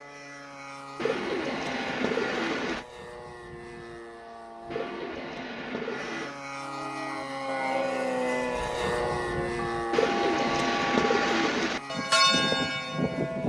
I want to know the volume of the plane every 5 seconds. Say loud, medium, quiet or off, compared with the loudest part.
medium, loud, medium.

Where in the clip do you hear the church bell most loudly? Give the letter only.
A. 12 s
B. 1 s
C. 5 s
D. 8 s
A.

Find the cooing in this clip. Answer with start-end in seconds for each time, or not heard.
0.9-2.9, 4.7-6.4, 9.9-11.8.